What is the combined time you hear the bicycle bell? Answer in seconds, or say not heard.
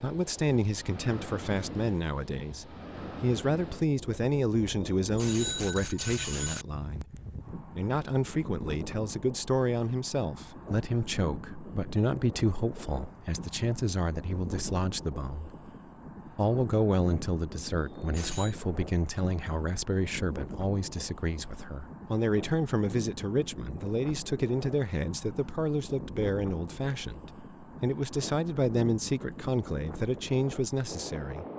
3 s.